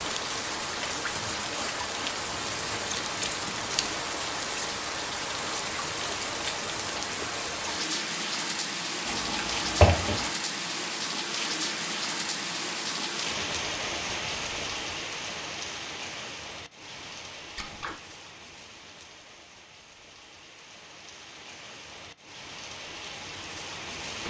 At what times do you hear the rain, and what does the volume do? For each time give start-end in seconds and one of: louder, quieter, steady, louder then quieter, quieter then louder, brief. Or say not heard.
0.0-24.2 quieter.